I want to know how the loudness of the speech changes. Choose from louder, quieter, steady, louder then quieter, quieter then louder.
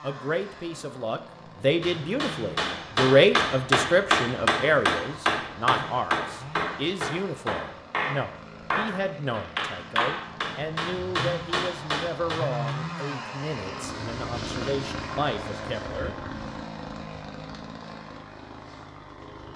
quieter.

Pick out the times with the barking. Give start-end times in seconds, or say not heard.
not heard.